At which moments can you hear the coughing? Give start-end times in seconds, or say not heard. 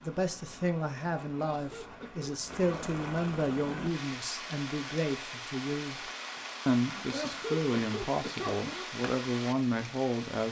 1.4-3.0, 6.8-8.8.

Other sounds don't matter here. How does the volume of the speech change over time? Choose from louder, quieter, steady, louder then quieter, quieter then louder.
steady.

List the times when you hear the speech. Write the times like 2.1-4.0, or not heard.
0.0-6.0, 6.7-10.4.